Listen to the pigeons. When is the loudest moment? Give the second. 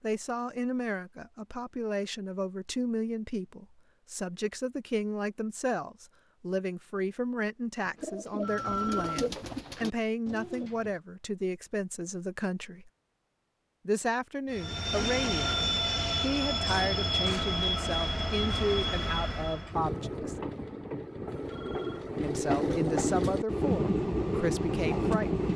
9 s.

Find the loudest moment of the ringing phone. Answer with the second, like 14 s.
9 s.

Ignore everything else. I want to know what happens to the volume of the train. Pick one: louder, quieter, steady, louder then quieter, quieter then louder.
quieter then louder.